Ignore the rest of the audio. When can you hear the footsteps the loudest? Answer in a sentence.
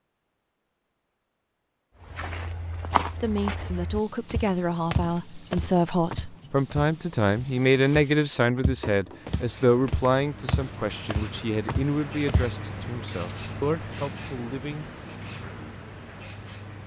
The loudest moment of the footsteps is at 3 seconds.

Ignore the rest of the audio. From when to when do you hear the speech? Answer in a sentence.
You can hear the speech from 3.1 to 14.8 s.